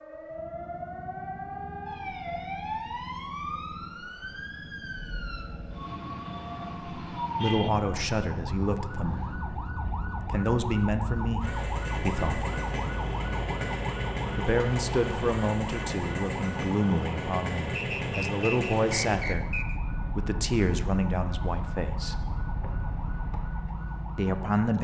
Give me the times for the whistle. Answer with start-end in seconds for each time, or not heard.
17.8-19.8.